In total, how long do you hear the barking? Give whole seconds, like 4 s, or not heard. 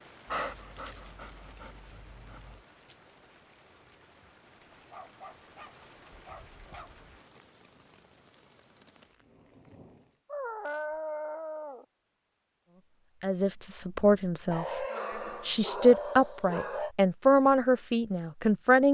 9 s.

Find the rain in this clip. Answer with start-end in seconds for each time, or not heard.
0.0-10.2.